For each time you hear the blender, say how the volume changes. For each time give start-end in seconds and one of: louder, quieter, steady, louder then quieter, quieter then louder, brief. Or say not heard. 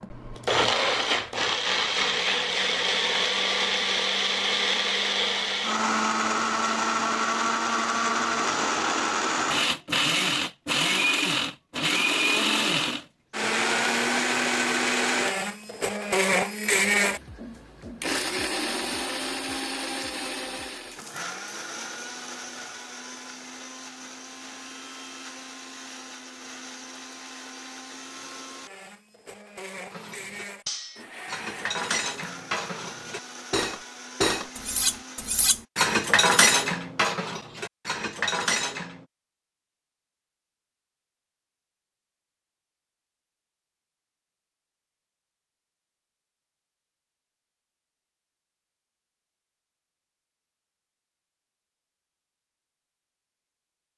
0.0-35.5 quieter.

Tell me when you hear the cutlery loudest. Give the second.
36 s.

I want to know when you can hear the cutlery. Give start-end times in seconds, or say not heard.
29.9-39.0.